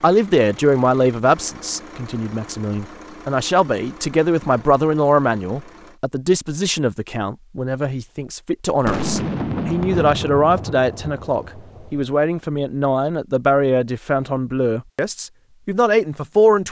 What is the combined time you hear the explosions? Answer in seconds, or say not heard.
3 s.